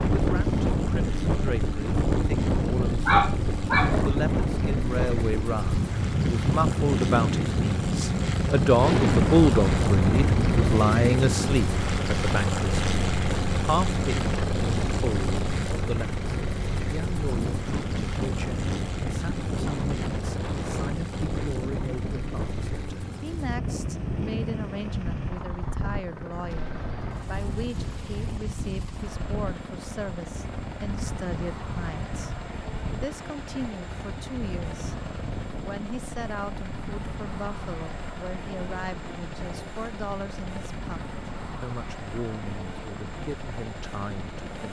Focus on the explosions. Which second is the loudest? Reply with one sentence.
The volume of the explosions peaks at 9 seconds.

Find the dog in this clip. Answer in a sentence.
The dog can be heard from 3.0 to 4.2 s.